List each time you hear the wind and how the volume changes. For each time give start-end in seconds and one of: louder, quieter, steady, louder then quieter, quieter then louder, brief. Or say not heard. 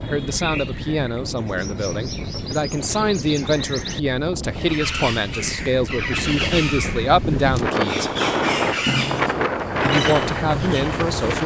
0.0-11.4 louder.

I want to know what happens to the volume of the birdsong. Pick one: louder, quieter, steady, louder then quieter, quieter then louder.
louder.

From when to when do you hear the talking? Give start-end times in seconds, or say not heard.
0.0-8.1, 9.8-11.4.